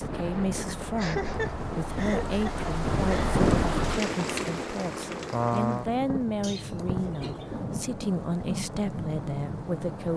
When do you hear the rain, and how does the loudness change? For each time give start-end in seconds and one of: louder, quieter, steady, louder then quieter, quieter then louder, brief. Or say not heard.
0.0-10.1 louder then quieter.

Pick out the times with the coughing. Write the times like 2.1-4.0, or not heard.
0.9-3.4, 6.4-7.6.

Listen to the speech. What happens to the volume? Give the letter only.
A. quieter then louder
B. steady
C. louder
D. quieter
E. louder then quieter
B.